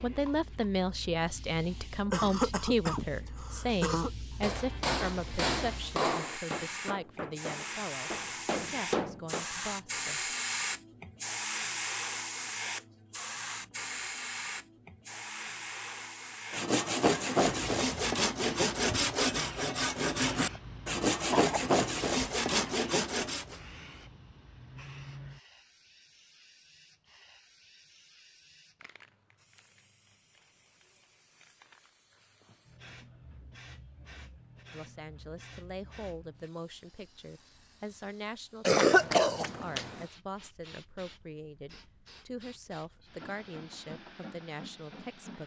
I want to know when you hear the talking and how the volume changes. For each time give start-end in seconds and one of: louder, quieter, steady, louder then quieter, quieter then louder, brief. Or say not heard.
0.0-10.3 quieter
34.7-45.4 steady.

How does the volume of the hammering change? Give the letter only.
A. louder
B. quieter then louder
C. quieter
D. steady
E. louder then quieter
B.